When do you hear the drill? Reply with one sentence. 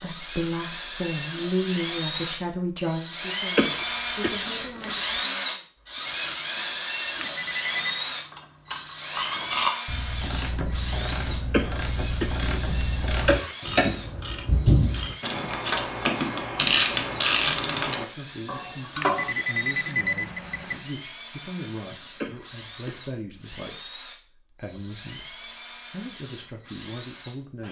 You can hear the drill from 0.0 to 27.6 s.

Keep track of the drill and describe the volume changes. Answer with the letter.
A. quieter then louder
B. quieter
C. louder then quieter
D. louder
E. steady
B.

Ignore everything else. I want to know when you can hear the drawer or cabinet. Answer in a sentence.
You can't hear the drawer or cabinet here.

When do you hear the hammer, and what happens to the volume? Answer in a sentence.
You can't hear the hammer here.